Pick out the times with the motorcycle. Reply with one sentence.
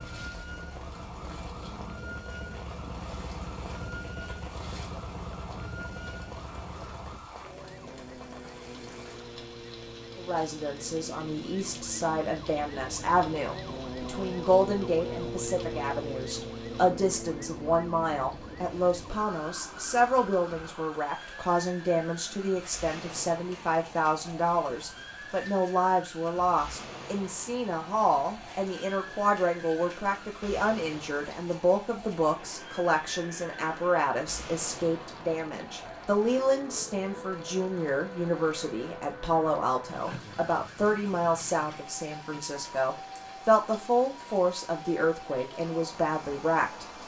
The motorcycle can be heard from 0.0 to 7.2 s.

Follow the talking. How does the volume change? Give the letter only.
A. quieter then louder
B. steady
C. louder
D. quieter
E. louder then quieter
B.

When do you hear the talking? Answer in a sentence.
You can hear the talking from 10.2 to 47.0 s.